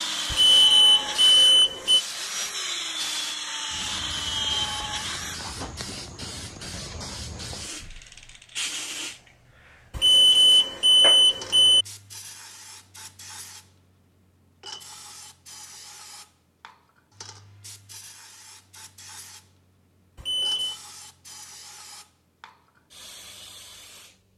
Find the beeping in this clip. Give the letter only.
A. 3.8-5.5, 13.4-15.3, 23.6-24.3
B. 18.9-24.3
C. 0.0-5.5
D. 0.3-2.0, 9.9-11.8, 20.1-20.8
D.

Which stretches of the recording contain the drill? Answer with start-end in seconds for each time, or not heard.
0.0-5.5.